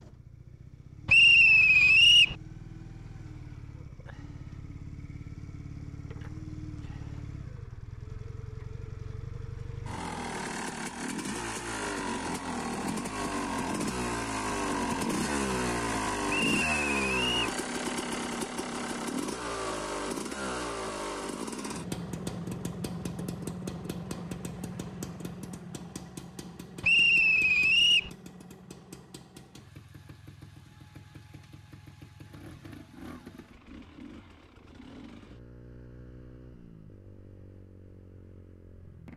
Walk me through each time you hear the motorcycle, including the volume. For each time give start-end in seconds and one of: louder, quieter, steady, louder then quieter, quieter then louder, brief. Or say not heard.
0.0-39.1 louder then quieter.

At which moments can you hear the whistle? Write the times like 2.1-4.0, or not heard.
1.1-2.4, 16.3-17.6, 26.8-28.1.